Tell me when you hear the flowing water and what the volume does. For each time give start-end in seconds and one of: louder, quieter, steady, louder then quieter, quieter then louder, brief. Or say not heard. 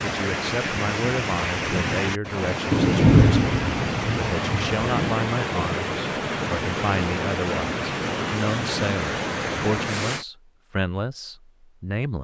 0.0-10.2 steady.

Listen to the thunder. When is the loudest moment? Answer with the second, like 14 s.
3 s.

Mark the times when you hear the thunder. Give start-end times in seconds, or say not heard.
2.7-5.2.